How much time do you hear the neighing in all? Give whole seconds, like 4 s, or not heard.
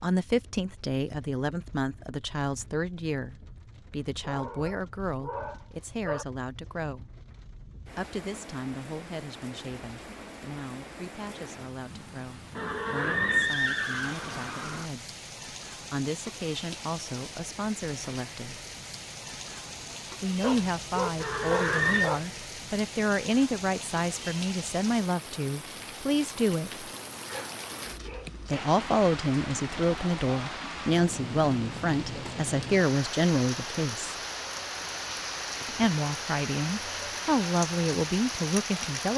3 s.